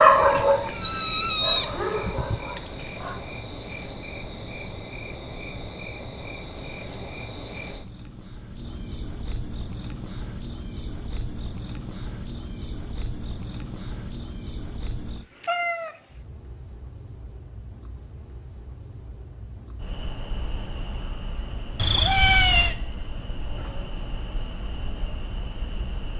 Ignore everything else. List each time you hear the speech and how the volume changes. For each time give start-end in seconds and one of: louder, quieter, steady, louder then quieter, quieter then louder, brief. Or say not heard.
not heard.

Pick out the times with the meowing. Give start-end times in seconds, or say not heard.
0.7-2.4, 15.4-15.9, 21.8-22.8.